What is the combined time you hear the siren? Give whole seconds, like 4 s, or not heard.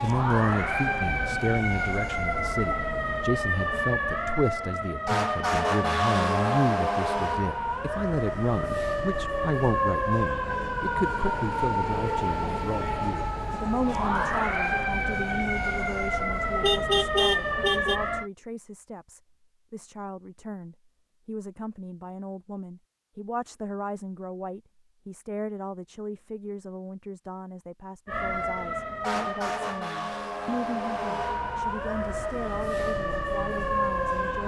25 s.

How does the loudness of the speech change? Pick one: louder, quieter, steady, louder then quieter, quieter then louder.
quieter.